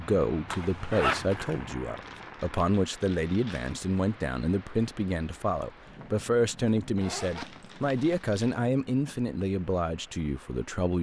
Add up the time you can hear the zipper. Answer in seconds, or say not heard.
3 s.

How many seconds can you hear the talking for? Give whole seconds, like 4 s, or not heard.
11 s.